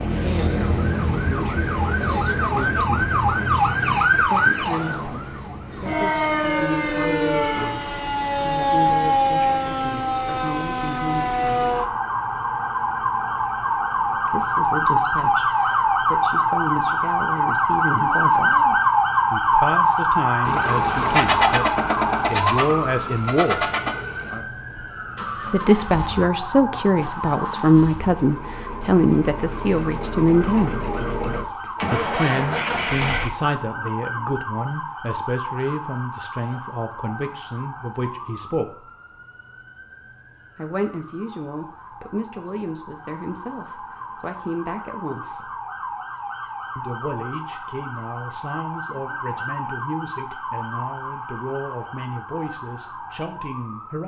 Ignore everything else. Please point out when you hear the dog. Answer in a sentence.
The dog can't be heard in this clip.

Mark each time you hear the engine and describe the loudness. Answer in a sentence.
You can hear the engine from 20.4 to 33.5 s, getting quieter then louder.